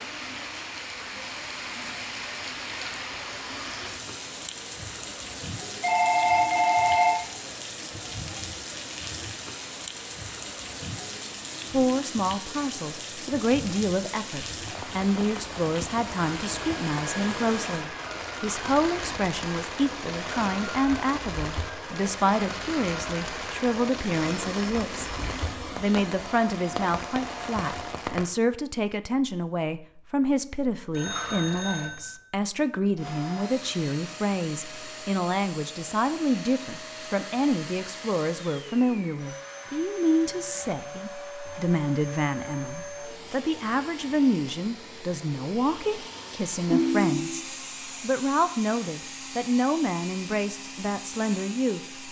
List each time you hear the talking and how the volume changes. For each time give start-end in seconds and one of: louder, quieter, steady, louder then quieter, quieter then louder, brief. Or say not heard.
11.7-51.8 steady.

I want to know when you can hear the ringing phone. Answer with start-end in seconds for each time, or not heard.
5.6-7.2, 30.9-32.1, 46.7-47.4.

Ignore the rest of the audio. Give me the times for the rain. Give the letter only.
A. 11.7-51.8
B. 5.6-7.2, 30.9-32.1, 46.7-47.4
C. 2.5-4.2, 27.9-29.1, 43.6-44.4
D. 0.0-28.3
D.